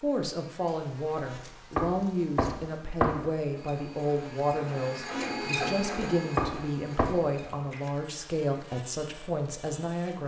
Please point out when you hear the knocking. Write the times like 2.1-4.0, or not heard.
1.8-3.3, 6.3-7.2.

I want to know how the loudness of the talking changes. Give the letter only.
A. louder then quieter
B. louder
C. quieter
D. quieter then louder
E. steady
E.